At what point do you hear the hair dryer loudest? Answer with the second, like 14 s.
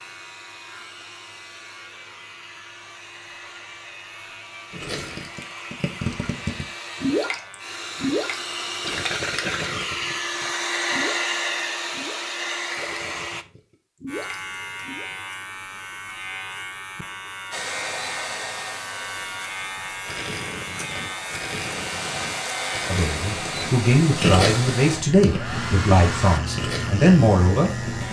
11 s.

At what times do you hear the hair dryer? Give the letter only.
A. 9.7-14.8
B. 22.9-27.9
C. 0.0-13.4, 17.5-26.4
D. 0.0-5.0
C.